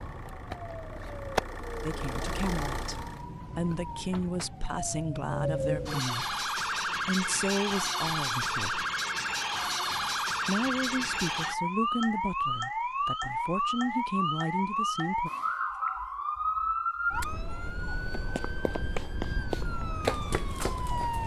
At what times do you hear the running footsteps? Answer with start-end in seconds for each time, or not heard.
18.1-21.2.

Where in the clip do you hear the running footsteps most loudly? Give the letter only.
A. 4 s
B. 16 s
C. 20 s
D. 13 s
C.